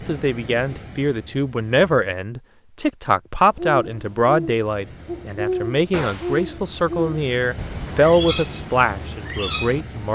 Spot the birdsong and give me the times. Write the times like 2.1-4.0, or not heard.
3.5-10.0.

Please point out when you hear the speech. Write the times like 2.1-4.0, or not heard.
0.1-10.0.